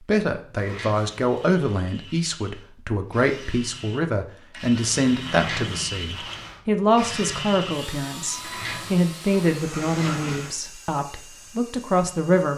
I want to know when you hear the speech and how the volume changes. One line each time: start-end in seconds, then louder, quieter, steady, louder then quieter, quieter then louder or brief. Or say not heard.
0.0-12.5 steady.